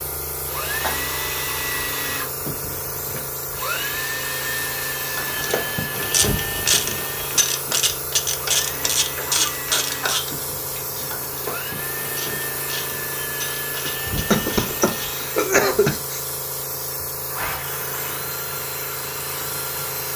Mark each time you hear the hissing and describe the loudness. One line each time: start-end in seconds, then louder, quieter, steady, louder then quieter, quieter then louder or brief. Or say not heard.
0.0-20.1 steady.